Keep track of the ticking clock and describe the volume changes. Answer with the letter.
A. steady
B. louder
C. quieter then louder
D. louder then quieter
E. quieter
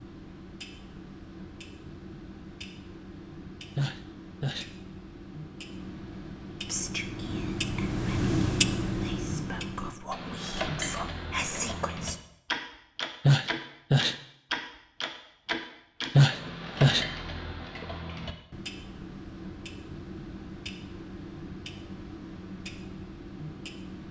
D.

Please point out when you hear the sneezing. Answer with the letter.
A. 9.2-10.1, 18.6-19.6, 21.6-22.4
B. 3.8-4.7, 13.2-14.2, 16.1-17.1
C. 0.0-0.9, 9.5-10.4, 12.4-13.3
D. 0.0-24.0
B.